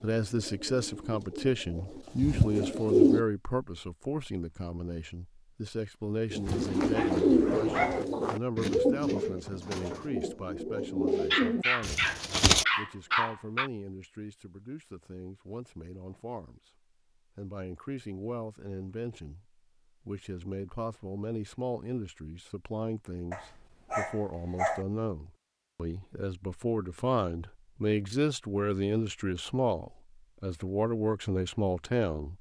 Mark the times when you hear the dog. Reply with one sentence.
The dog can be heard from 6.5 to 8.1 s, from 11.3 to 13.7 s and from 23.3 to 24.9 s.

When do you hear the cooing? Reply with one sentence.
The cooing can be heard from 0.0 to 3.2 s and from 6.3 to 12.7 s.